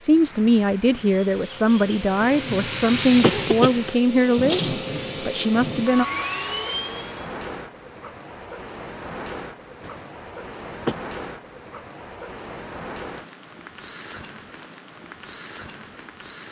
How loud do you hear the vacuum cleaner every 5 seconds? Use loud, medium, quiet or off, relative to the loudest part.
loud, loud, off, off.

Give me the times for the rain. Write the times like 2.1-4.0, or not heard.
0.0-16.4.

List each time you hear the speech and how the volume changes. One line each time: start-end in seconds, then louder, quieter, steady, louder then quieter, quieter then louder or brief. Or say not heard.
0.0-6.0 steady.